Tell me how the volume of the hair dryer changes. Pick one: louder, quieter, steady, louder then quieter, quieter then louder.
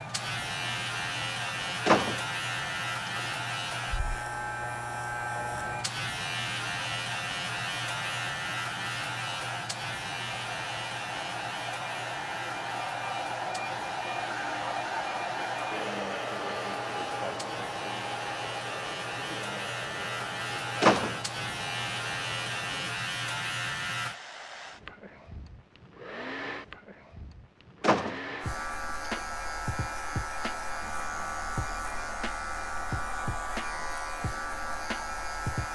louder then quieter.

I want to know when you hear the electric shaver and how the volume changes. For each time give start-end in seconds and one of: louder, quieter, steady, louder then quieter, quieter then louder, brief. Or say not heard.
0.0-24.1 quieter then louder
28.4-35.7 steady.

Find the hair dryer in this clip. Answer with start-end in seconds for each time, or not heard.
0.0-35.7.